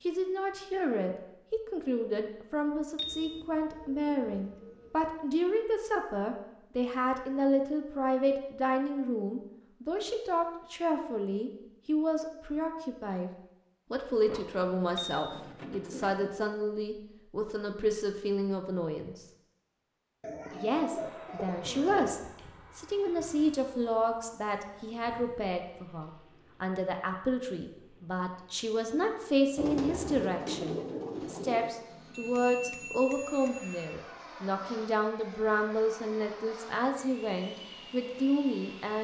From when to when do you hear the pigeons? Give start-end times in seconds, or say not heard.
3.0-5.0, 14.2-16.3, 20.2-22.1, 29.6-31.8.